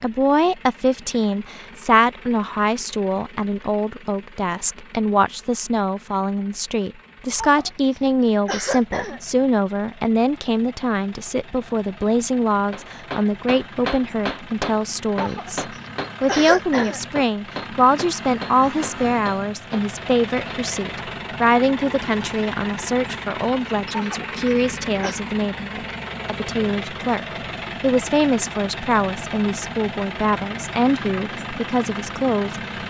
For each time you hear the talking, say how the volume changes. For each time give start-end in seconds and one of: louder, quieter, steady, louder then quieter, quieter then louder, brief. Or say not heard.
0.0-32.8 steady.